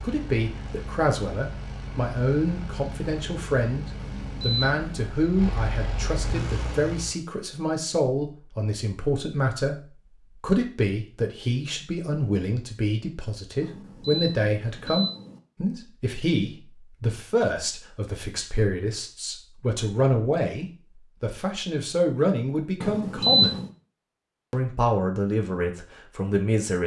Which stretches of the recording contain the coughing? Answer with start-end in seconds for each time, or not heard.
not heard.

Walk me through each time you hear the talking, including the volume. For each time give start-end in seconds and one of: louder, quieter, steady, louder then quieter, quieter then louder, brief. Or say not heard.
0.0-23.6 steady
24.5-26.8 brief.